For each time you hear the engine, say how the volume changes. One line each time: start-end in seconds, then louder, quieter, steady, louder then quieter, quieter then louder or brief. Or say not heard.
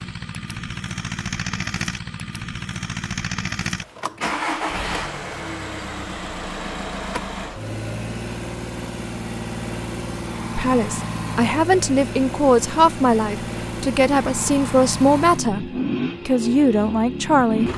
0.0-17.7 steady.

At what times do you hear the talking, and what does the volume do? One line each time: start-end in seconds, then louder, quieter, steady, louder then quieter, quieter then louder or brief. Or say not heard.
10.6-17.7 steady.